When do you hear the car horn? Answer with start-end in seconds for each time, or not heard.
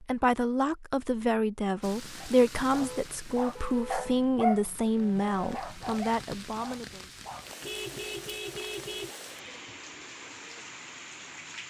2.7-4.2, 7.6-9.1.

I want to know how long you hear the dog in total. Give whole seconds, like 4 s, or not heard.
5 s.